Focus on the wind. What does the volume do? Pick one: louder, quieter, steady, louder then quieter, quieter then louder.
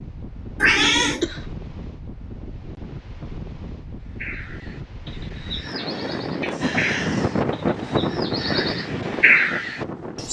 louder.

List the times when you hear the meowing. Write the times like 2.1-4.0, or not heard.
0.6-1.2, 5.7-7.0.